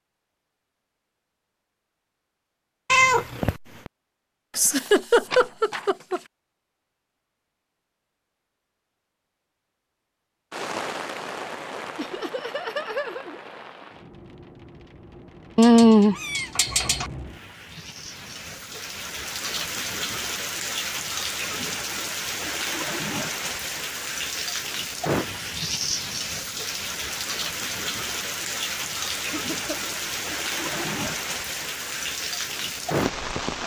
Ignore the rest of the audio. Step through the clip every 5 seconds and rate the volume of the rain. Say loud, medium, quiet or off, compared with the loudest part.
off, off, medium, medium, loud, loud, loud.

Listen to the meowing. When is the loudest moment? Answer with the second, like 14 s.
16 s.